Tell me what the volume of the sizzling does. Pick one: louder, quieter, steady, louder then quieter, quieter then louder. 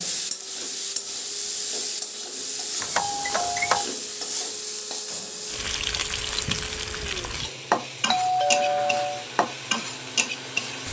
steady.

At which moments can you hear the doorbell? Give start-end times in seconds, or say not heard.
2.8-3.9, 8.1-9.2.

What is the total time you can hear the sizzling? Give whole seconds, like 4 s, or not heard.
11 s.